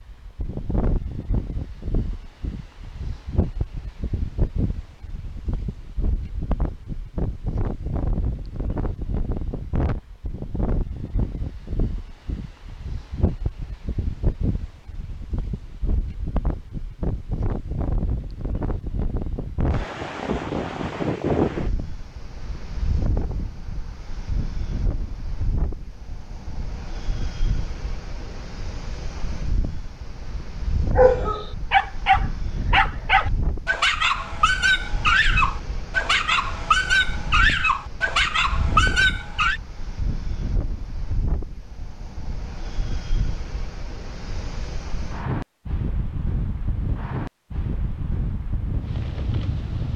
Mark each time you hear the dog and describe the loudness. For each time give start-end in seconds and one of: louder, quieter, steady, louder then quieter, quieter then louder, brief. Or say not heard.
30.9-39.6 steady.